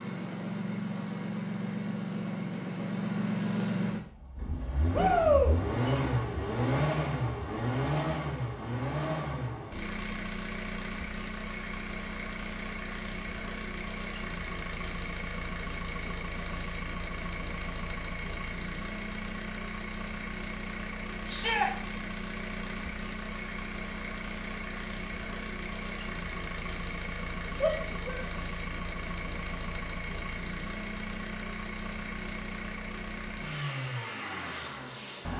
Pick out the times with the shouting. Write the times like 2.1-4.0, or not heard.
4.9-5.5, 21.2-21.7, 27.6-28.2.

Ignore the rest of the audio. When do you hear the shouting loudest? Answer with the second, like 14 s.
5 s.